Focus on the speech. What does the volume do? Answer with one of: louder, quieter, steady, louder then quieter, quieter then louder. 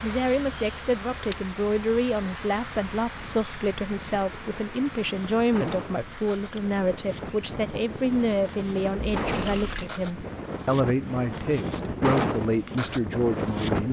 steady.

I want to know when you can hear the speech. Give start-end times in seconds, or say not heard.
0.0-13.8.